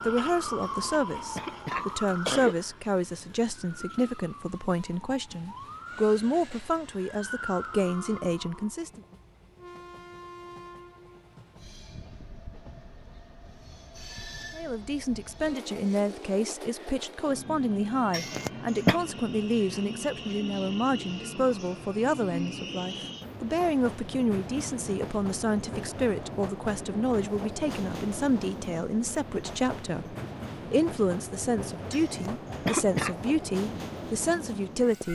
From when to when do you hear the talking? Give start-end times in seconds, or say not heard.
0.0-9.0, 14.6-35.0.